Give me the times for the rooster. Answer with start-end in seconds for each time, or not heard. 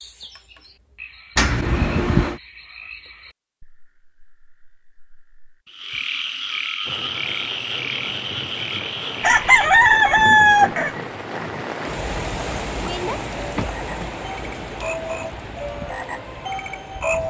9.2-10.9.